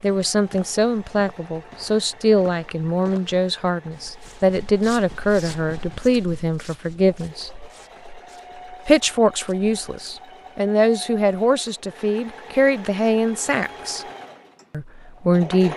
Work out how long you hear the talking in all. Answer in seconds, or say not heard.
14 s.